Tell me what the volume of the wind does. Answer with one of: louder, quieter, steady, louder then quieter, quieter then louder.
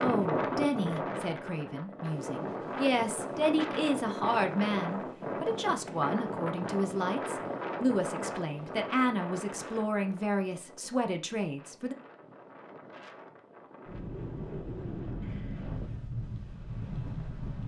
quieter then louder.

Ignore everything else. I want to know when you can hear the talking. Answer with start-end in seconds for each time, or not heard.
0.0-11.9.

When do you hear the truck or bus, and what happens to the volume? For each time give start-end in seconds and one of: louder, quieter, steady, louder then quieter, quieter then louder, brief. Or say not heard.
not heard.